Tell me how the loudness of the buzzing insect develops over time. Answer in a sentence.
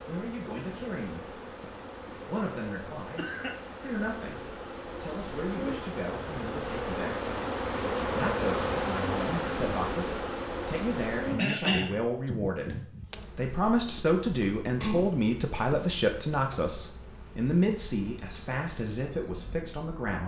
The volume of the buzzing insect goes up, then down.